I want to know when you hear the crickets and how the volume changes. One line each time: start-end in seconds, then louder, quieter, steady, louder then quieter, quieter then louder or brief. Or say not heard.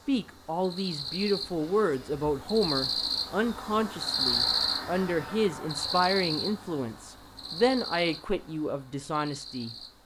0.0-10.0 louder then quieter.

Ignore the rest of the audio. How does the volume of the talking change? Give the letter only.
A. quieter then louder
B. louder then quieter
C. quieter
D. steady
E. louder
D.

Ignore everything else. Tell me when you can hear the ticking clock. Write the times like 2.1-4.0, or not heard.
not heard.